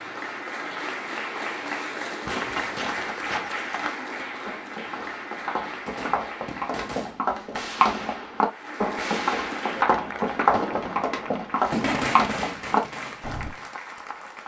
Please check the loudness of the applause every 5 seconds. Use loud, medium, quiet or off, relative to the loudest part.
loud, loud, medium.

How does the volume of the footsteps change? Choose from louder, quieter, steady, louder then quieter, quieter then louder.
louder.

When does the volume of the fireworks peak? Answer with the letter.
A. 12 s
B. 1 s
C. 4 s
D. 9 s
A.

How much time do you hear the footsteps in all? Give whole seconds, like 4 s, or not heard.
11 s.